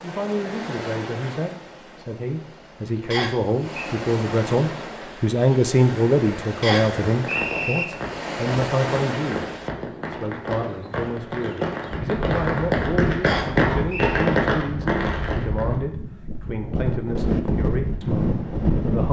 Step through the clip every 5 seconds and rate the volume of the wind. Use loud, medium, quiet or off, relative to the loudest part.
medium, medium, medium, loud.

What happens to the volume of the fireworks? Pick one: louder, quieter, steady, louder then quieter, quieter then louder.
louder.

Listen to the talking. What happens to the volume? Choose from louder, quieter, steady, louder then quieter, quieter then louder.
louder then quieter.